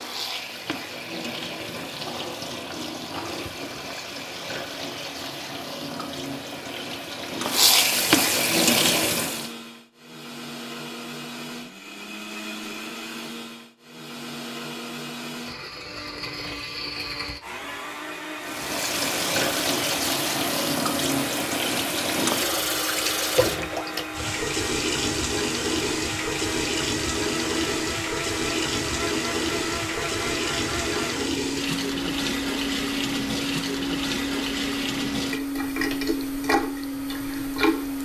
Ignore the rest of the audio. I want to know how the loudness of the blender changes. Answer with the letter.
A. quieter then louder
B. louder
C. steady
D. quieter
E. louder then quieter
B.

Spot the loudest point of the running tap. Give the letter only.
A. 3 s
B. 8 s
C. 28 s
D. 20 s
B.